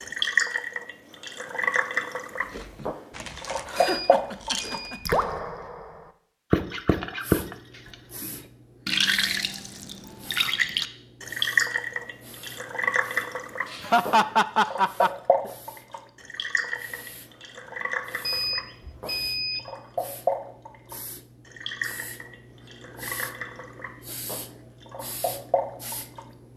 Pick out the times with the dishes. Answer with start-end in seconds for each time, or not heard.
not heard.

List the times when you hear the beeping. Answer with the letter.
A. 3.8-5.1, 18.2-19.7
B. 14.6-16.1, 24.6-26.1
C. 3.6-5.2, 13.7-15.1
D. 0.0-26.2
A.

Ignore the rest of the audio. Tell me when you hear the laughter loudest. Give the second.
14 s.